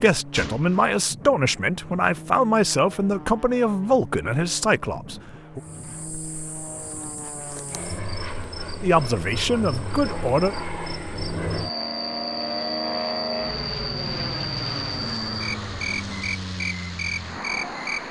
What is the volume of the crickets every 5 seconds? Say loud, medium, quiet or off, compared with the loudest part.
off, medium, loud, loud.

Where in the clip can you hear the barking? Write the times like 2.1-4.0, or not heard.
not heard.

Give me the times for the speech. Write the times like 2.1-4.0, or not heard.
0.0-5.6, 8.8-10.6.